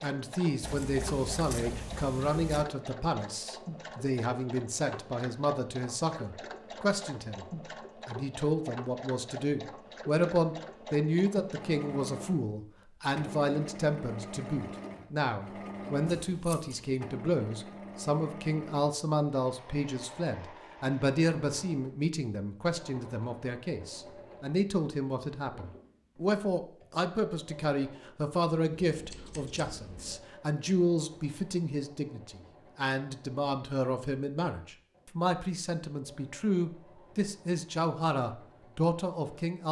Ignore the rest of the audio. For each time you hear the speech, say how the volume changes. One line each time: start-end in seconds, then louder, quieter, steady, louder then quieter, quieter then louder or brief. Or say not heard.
0.0-7.5 steady
8.1-39.6 steady.